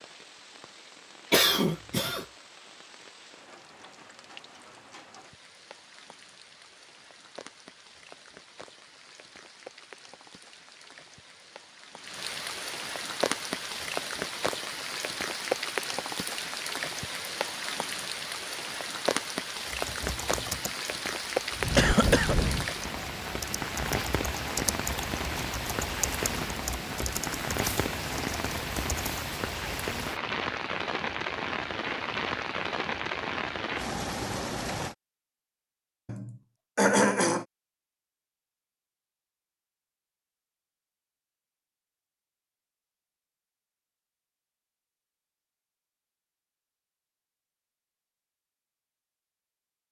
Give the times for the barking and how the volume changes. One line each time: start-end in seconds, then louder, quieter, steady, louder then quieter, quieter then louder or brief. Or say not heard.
not heard.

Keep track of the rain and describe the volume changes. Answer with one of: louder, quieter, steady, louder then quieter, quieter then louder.
louder.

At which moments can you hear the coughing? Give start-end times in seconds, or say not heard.
1.3-2.2, 21.8-22.4, 36.0-37.5.